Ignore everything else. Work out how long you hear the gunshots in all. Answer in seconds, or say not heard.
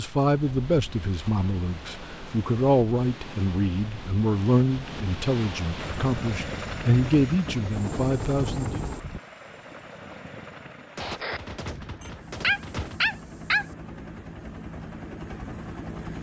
2 s.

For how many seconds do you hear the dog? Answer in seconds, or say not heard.
2 s.